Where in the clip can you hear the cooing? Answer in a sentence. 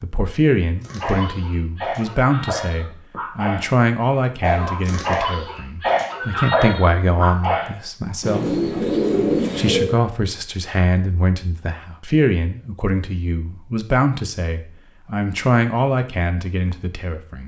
You can hear the cooing from 8.2 to 9.9 s.